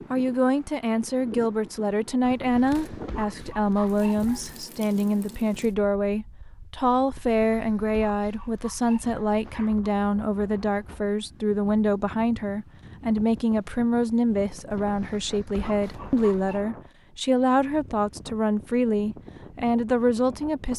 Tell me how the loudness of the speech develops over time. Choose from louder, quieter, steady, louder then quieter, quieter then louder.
steady.